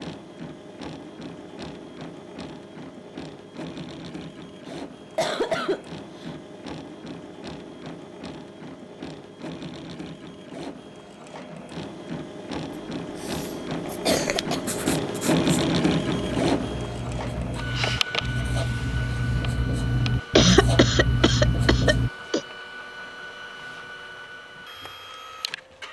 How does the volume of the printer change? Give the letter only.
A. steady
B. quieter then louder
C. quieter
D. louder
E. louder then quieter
E.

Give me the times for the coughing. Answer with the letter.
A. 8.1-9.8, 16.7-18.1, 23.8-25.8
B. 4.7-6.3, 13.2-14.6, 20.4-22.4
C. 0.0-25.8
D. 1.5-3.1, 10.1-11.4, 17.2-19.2
B.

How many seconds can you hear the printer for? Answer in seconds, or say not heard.
26 s.